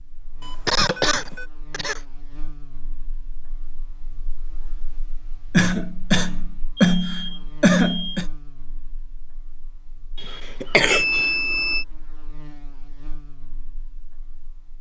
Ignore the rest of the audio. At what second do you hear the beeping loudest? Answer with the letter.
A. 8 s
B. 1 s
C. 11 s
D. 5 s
C.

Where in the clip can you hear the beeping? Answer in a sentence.
The beeping can be heard from 0.4 to 1.5 s, from 6.8 to 8.2 s and from 10.9 to 11.8 s.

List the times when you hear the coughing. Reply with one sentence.
The coughing can be heard from 0.7 to 2.0 s, from 5.5 to 8.2 s and from 10.2 to 11.2 s.